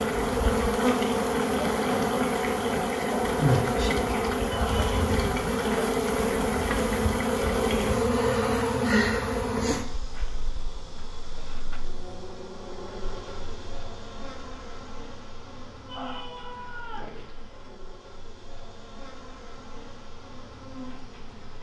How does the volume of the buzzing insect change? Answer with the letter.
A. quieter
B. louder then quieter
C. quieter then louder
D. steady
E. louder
A.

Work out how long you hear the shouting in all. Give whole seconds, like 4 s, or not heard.
2 s.